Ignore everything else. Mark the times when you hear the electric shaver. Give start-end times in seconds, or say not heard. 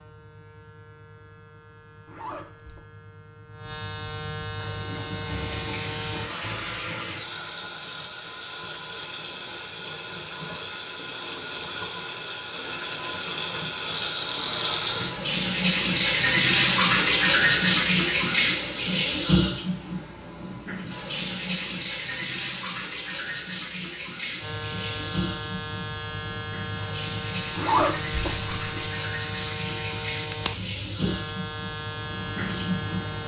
0.0-6.3, 24.4-33.2.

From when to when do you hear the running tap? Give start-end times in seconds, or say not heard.
4.5-33.2.